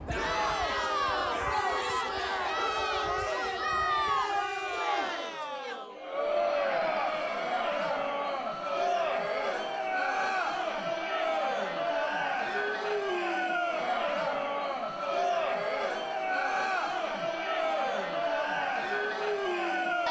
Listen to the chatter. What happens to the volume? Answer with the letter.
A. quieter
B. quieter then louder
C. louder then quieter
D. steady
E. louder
D.